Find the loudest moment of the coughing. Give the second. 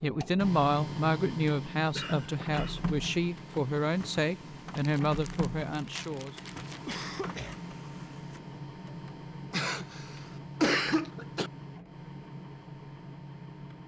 11 s.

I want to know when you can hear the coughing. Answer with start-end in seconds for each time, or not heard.
1.9-2.9, 6.7-7.6, 9.5-11.5.